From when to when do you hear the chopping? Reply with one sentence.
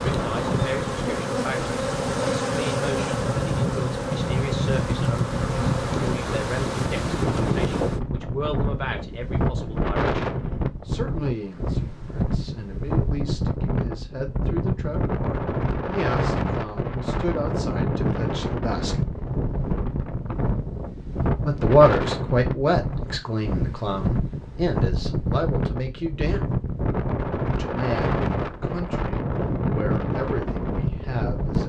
You can't hear the chopping here.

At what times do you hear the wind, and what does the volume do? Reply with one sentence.
The wind can be heard from 0.0 to 31.6 s, at a steady volume.